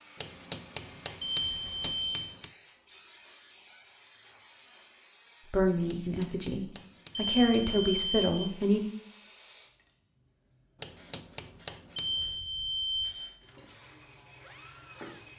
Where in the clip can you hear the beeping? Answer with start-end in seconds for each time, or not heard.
1.2-2.2, 7.1-8.4, 11.9-13.2.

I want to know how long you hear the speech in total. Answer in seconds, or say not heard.
3 s.